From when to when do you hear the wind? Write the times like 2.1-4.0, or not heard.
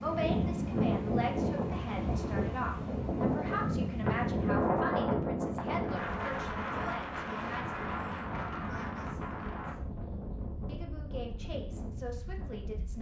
0.0-12.9.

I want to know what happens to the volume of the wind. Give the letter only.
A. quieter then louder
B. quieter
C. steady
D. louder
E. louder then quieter
B.